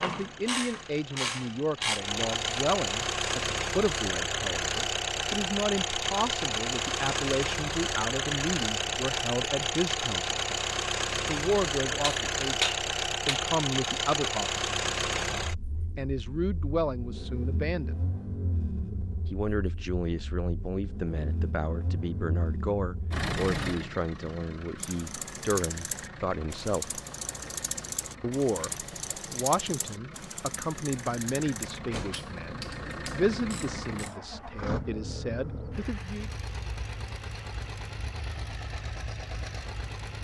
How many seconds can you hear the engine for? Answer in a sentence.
You can hear the engine for 40 seconds altogether.